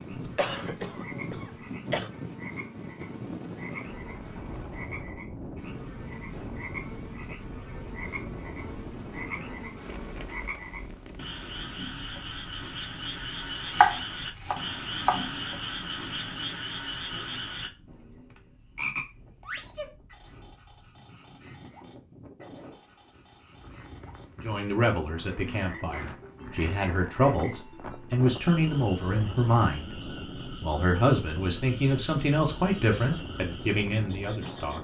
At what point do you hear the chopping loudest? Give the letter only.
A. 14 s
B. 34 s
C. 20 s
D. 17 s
A.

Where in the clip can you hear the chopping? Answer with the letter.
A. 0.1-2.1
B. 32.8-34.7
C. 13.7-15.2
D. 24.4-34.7
C.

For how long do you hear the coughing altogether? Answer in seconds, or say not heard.
2 s.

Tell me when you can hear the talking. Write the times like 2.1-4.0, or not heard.
24.4-34.7.